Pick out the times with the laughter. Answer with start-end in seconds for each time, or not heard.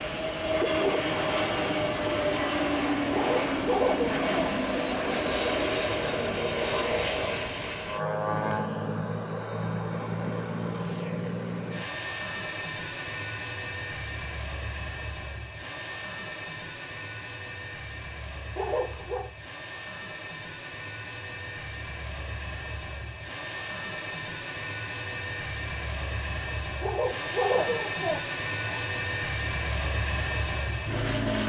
3.1-4.5, 18.6-19.3, 26.8-28.8.